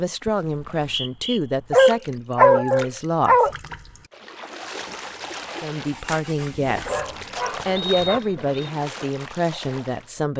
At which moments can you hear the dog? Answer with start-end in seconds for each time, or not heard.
1.7-3.5, 6.5-8.2.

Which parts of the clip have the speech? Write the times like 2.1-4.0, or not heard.
0.0-3.4, 5.6-7.0, 7.7-10.3.